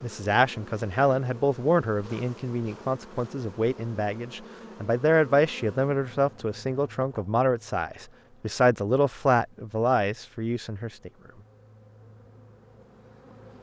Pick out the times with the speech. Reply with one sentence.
You can hear the speech from 0.0 to 11.1 s.